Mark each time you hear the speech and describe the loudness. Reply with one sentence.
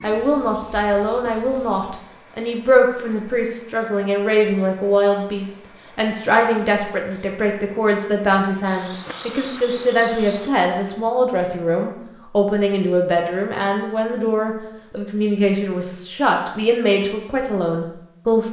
The speech can be heard from 0.0 to 18.4 s, at a steady volume.